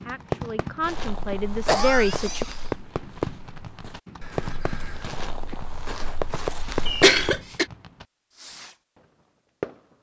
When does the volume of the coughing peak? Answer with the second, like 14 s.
7 s.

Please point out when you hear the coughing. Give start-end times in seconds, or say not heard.
1.6-2.5, 6.8-7.7.